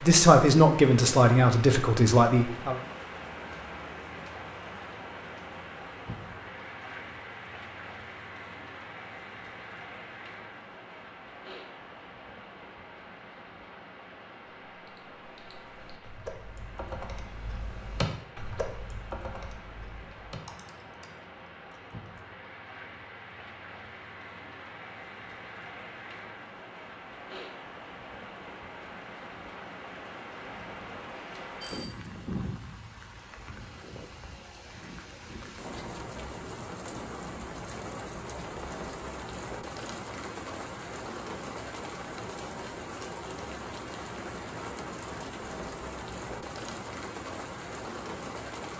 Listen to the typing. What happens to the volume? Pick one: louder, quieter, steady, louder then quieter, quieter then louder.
louder then quieter.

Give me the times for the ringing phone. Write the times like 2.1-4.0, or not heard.
30.4-31.9.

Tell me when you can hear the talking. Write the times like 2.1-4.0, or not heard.
0.0-2.8.